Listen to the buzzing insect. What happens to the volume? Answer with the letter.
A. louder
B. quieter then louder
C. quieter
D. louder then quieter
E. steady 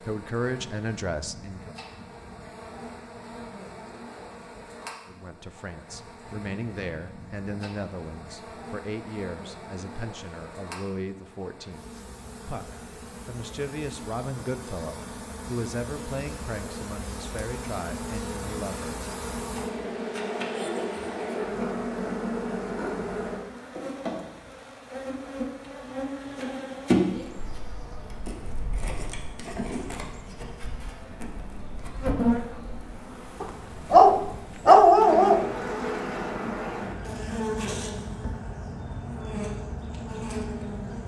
A.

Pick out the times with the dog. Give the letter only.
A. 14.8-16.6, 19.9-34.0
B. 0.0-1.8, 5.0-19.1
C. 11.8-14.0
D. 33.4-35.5
D.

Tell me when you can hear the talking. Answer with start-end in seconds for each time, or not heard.
0.0-1.8, 5.0-19.1.